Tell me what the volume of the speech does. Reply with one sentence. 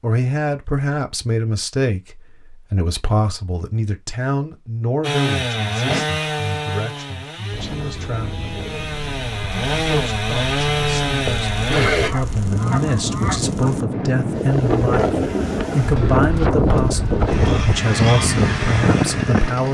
The loudness of the speech goes down, then up.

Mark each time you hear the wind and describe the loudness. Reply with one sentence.
The wind can be heard from 7.5 to 19.6 s, getting louder.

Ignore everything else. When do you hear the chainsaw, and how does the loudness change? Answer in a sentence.
You can hear the chainsaw from 5.0 to 12.1 s, getting quieter then louder; and briefly from 17.2 to 19.6 s.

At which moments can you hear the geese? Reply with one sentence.
You can hear the geese from 11.2 to 13.8 s.